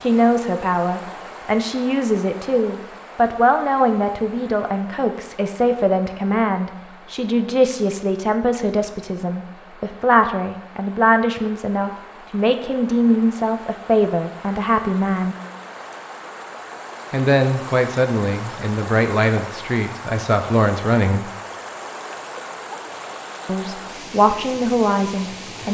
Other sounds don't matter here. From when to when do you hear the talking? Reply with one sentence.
You can hear the talking from 0.0 to 15.3 s, from 17.1 to 21.3 s and from 23.4 to 25.6 s.